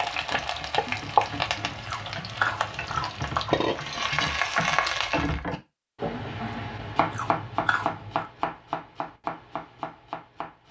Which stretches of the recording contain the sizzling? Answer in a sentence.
You can hear the sizzling from 0.0 to 5.4 s.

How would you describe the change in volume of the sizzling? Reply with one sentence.
The volume of the sizzling goes down, then up.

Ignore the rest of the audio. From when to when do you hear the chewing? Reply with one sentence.
The chewing can be heard from 0.8 to 3.6 s and from 6.1 to 8.3 s.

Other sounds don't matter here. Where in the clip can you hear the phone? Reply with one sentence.
You can't hear the phone here.